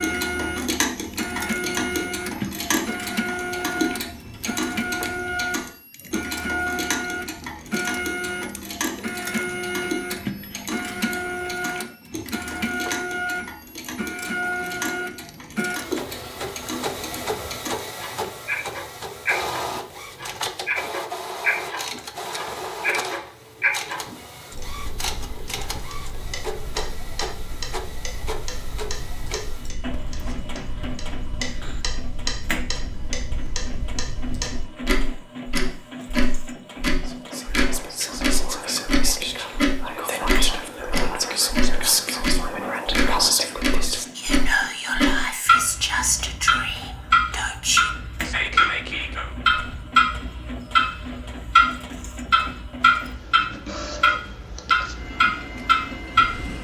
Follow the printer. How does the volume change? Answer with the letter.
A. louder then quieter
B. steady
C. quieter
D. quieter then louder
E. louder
C.